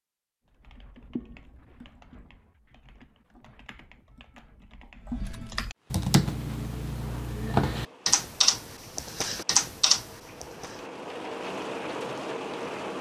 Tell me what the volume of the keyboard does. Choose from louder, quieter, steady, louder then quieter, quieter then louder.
quieter then louder.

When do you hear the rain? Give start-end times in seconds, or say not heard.
5.8-12.9.